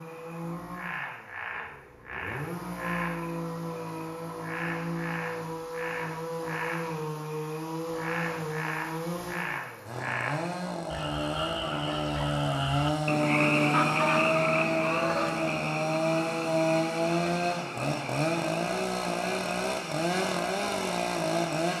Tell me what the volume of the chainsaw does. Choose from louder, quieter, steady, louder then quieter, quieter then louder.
louder.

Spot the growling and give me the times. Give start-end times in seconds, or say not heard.
not heard.